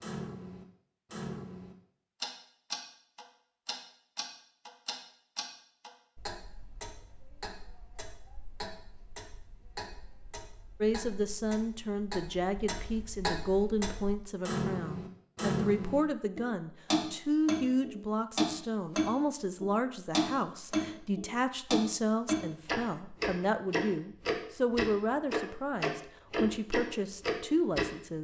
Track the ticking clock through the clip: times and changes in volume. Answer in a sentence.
The ticking clock can be heard from 0.0 to 27.9 s, getting quieter then louder.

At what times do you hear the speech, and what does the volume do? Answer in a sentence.
You can hear the speech from 10.8 to 28.2 s, at a steady volume.